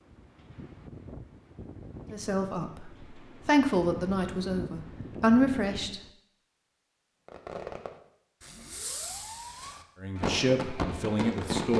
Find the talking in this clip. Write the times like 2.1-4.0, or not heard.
2.1-6.0, 10.0-11.7.